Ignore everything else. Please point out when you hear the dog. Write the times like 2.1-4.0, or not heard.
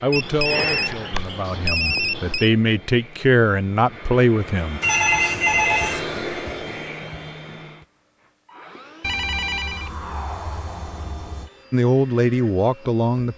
not heard.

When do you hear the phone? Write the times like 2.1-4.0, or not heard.
0.1-2.5, 4.8-6.0, 9.0-11.5.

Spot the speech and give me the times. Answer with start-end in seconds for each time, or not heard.
0.0-4.8, 11.7-13.3.